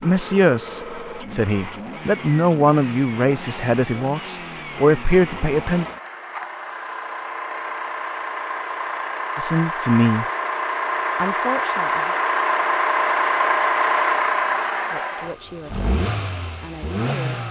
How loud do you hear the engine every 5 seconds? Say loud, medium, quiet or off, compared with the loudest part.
quiet, medium, loud, medium.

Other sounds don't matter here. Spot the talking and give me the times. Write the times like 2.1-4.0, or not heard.
0.0-5.8, 9.3-10.2, 11.2-12.2, 14.9-17.4.